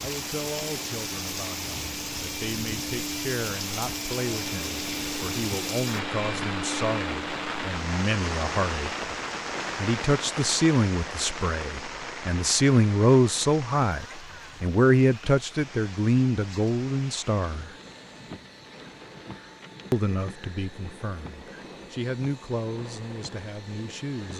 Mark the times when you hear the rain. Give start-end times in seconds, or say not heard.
0.0-24.3.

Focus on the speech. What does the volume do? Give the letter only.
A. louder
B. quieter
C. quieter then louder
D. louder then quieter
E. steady
D.